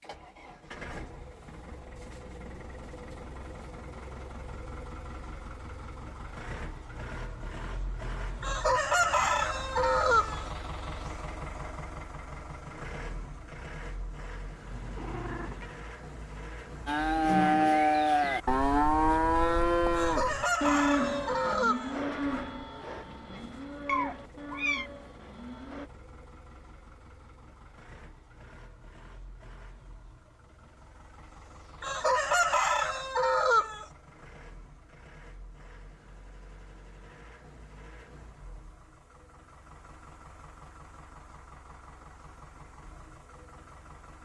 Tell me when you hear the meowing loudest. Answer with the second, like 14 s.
24 s.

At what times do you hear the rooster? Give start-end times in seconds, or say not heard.
8.4-10.4, 19.9-22.0, 31.8-33.9.